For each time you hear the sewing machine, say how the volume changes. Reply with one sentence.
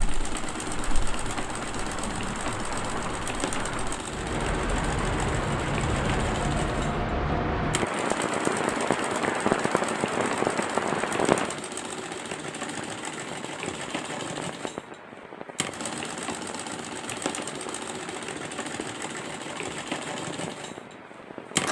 You can hear the sewing machine from 0.0 to 21.6 s, at a steady volume.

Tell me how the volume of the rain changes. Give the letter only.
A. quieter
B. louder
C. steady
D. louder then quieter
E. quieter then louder
D.